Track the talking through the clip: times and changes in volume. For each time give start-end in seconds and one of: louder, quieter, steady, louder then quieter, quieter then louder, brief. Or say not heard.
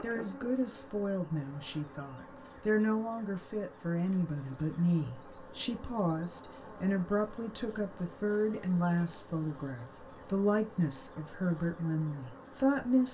0.0-13.0 steady.